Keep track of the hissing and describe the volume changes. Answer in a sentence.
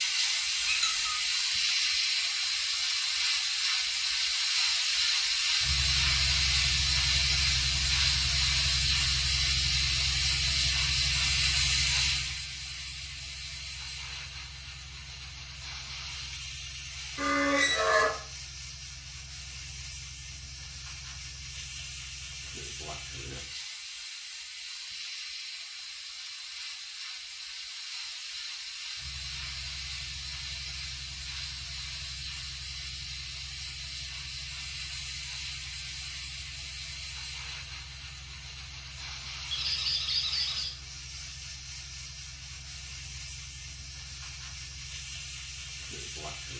The loudness of the hissing goes down.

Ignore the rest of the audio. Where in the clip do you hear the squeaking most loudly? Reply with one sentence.
The loudest moment of the squeaking is at 18 seconds.